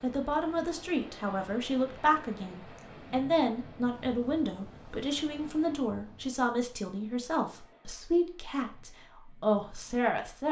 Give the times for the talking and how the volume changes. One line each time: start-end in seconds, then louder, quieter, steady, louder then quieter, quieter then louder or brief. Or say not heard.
0.0-10.4 steady.